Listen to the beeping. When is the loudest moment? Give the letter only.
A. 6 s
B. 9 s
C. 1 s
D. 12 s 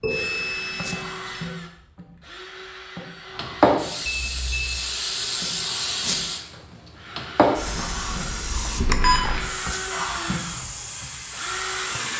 B.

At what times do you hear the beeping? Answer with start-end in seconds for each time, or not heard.
0.0-1.4, 4.0-4.8, 8.8-9.4.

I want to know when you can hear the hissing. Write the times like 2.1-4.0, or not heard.
3.4-12.1.